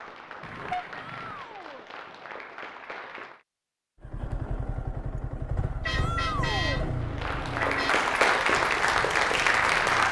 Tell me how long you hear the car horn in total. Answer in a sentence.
You can hear the car horn for 3 seconds altogether.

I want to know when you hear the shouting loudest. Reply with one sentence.
The volume of the shouting peaks at 6 seconds.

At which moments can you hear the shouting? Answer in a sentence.
You can hear the shouting from 1.1 to 1.9 s and from 5.9 to 6.9 s.